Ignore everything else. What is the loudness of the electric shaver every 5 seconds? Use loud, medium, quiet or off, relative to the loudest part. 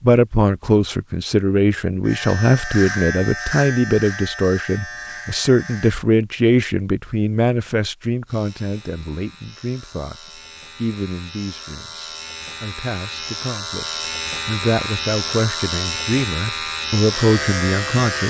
loud, quiet, medium, loud.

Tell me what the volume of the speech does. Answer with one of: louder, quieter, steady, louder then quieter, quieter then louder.
quieter then louder.